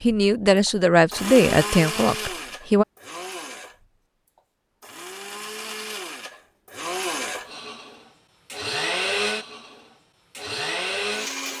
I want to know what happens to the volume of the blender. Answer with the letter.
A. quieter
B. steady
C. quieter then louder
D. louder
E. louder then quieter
C.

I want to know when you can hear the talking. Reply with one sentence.
The talking can be heard from 0.0 to 2.9 s.